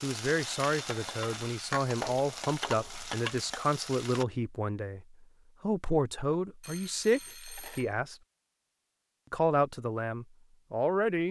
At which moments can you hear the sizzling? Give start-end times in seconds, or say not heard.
0.0-4.2.